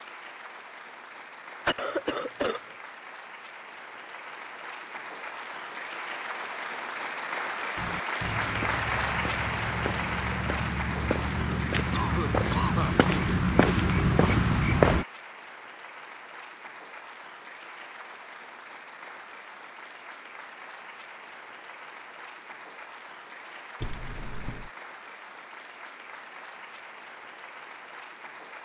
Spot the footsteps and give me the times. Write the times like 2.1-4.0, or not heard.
7.8-15.1.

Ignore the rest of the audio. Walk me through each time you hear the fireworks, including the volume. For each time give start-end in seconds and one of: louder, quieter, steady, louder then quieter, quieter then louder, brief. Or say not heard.
not heard.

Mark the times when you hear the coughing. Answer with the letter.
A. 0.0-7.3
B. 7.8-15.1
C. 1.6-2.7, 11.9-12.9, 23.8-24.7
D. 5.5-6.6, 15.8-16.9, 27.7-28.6
C.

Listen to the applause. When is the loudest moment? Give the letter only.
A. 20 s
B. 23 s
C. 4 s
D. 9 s
D.